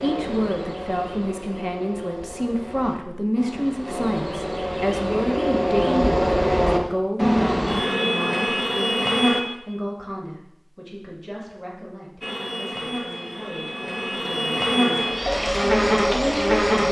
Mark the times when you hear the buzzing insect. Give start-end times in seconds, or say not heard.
0.0-9.4, 12.2-16.8.